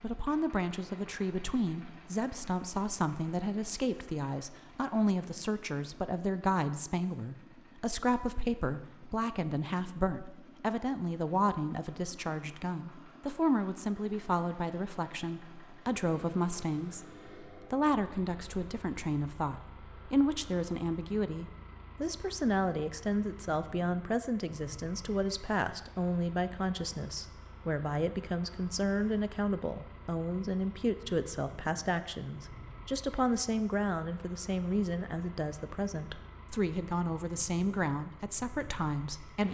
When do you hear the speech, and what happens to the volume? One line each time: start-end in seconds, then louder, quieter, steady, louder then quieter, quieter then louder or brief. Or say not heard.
0.0-39.4 steady.